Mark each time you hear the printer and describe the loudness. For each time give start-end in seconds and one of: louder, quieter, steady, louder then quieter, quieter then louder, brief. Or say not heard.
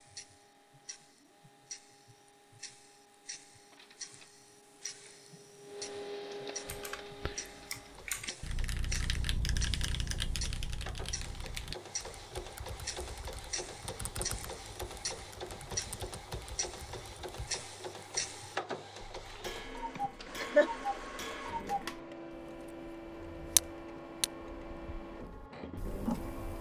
0.0-26.5 louder.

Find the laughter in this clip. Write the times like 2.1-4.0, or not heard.
19.9-20.7.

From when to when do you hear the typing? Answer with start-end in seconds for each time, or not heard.
6.7-17.6.